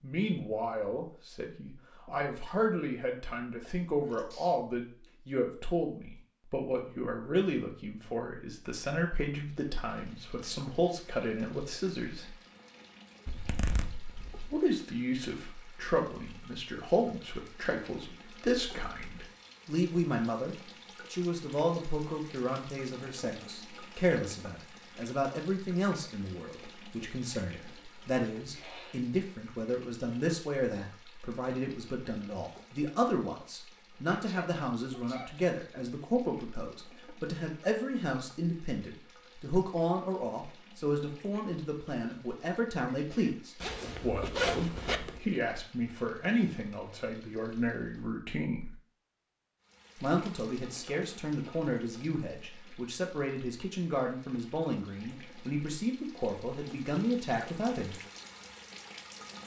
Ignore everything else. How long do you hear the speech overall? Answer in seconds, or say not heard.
55 s.